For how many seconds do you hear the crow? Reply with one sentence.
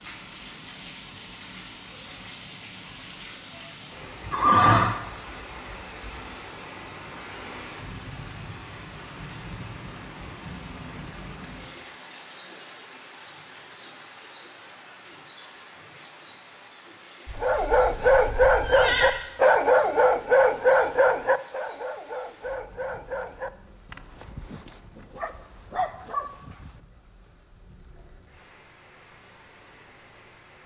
You can't hear the crow here.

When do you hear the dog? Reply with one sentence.
You can hear the dog from 17.4 to 26.8 s.